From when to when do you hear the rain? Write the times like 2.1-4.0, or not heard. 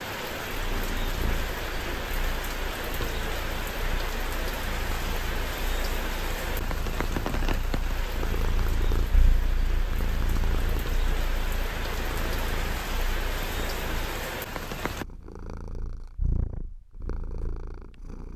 0.0-15.1.